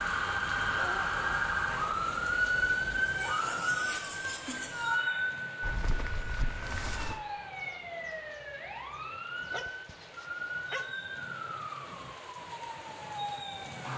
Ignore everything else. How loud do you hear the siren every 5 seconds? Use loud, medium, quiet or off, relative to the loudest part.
loud, medium, medium.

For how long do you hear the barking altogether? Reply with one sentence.
The barking can be heard for 4 seconds in total.